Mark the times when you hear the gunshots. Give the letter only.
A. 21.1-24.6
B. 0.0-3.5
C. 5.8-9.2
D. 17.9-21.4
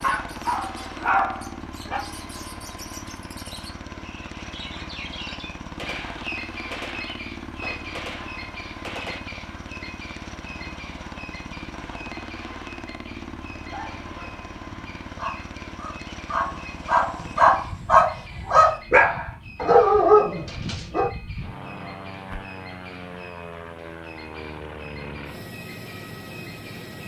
C.